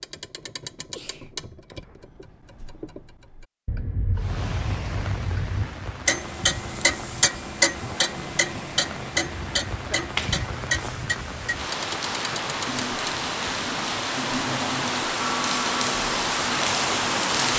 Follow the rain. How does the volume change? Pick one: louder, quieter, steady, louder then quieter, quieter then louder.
louder.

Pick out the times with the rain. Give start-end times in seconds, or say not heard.
4.2-17.5.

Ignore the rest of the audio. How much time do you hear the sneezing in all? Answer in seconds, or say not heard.
2 s.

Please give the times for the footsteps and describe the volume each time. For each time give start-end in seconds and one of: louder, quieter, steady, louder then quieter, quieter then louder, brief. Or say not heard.
not heard.